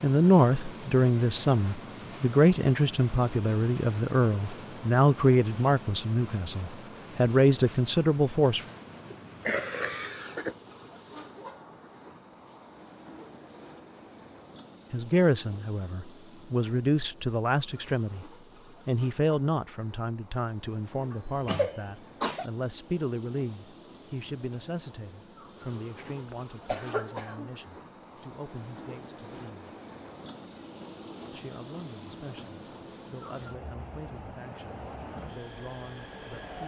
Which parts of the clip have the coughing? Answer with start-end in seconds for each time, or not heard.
9.1-10.6, 21.1-22.4, 26.2-27.6.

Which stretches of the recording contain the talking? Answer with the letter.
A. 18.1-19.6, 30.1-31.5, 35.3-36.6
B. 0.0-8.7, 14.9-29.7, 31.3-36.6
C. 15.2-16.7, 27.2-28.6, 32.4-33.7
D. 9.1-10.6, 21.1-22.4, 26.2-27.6
B.